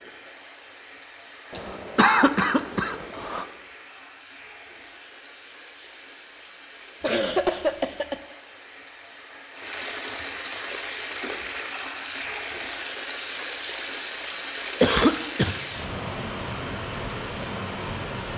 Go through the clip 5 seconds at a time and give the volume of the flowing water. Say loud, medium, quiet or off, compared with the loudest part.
quiet, medium, loud, loud.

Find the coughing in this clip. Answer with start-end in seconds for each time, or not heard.
1.5-3.5, 7.0-8.2, 14.8-15.6.